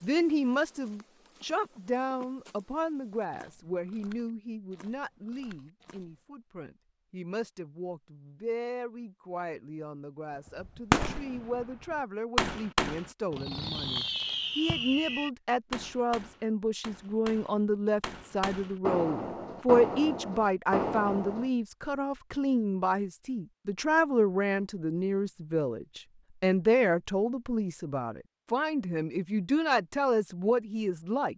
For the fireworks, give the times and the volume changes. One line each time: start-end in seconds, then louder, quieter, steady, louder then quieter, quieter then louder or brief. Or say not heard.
10.6-21.5 quieter then louder.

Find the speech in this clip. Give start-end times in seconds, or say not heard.
0.0-31.3.